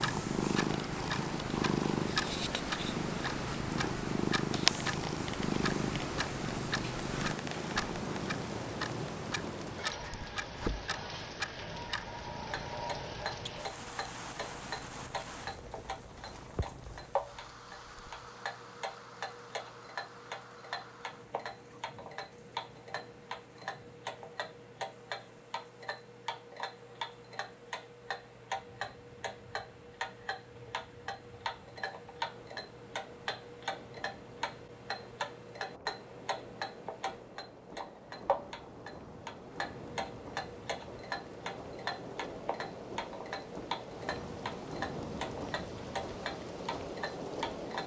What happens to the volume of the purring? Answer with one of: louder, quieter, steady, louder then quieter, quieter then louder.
quieter.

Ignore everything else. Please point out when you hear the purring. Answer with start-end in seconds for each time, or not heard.
0.0-18.3.